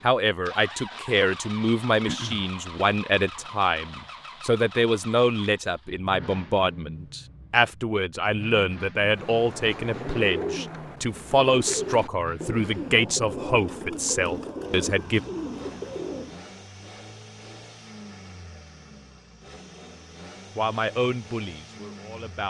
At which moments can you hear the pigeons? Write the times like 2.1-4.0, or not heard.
9.0-16.5.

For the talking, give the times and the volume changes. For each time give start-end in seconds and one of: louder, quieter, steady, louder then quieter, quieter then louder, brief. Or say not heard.
0.0-15.2 steady
20.6-22.4 brief.